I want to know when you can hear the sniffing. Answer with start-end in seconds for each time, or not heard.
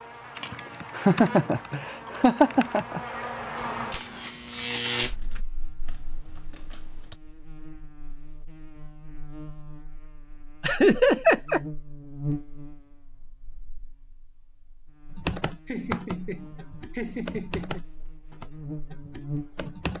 not heard.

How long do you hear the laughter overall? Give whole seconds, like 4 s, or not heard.
6 s.